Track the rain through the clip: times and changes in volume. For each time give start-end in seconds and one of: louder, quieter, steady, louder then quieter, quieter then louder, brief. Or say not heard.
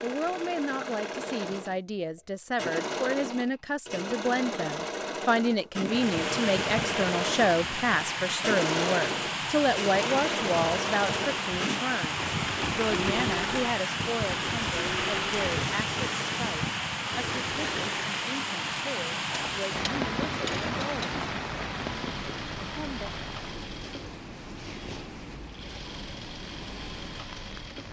5.8-27.8 quieter.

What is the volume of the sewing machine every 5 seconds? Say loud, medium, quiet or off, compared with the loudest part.
loud, loud, loud, medium, medium, medium.